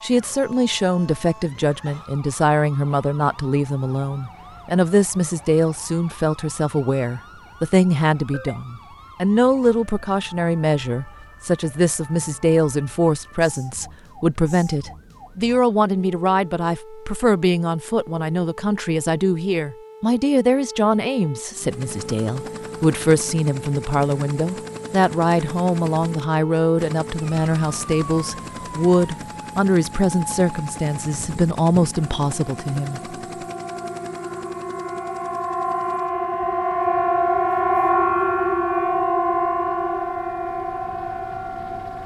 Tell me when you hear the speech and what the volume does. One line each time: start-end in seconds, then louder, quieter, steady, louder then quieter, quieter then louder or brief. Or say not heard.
0.0-33.1 steady.